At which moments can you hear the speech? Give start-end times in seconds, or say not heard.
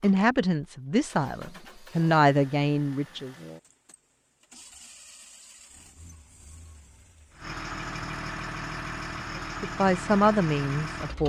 0.0-3.4, 9.3-11.2.